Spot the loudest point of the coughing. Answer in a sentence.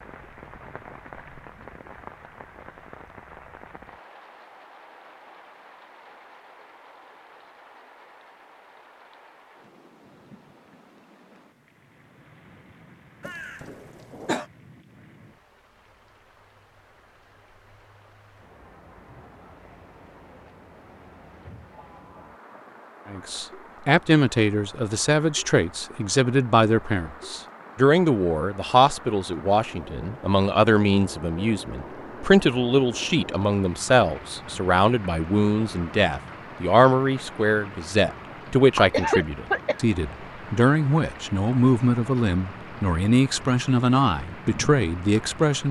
The loudest moment of the coughing is at 39 seconds.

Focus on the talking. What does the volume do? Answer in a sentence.
The volume of the talking stays about the same.